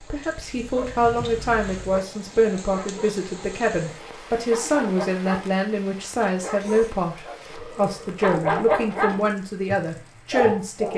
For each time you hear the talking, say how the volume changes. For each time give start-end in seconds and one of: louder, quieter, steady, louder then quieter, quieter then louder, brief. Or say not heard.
0.1-10.9 steady.